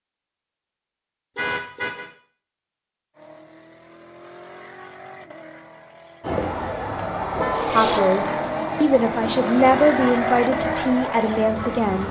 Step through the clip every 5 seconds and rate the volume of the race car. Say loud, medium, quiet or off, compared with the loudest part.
quiet, loud, loud.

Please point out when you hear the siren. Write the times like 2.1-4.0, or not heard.
6.2-12.0.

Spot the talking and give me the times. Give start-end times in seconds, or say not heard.
7.7-12.0.